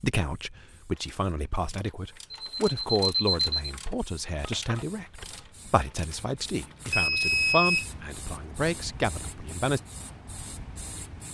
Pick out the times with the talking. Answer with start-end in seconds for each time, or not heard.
0.0-9.8.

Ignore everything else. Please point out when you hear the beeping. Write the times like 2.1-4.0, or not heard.
2.3-3.8, 6.9-7.9.